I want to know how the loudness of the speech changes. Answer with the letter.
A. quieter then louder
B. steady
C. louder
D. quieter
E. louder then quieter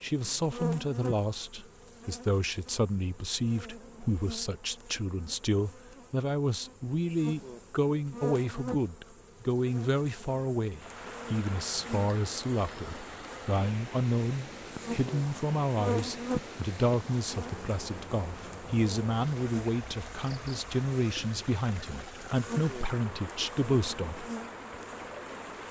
B.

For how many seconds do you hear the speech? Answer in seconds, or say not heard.
24 s.